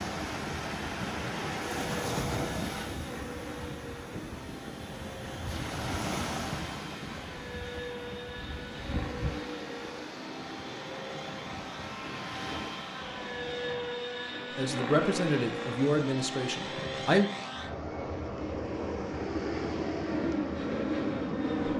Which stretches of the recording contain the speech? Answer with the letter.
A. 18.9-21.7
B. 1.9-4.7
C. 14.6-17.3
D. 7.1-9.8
C.